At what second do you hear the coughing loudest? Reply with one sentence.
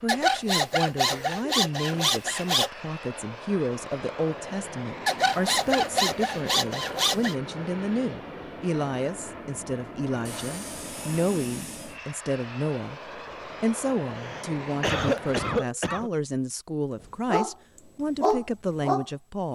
The loudest moment of the coughing is at 15 seconds.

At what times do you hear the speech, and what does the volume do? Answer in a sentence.
You can hear the speech from 0.0 to 19.4 s, at a steady volume.